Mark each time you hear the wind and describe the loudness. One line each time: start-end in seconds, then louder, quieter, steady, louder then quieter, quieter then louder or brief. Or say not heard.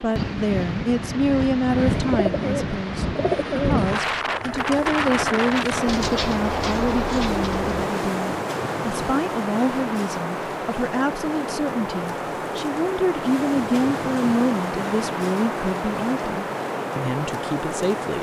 0.0-18.1 steady.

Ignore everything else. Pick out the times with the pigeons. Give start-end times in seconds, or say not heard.
1.9-7.8.